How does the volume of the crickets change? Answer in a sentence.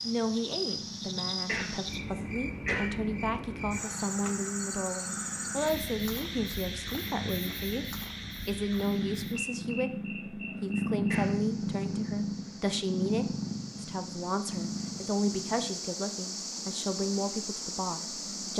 The loudness of the crickets goes down, then up.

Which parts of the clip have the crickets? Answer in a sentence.
The crickets can be heard from 0.0 to 18.5 s.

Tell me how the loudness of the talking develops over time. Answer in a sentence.
The loudness of the talking stays about the same.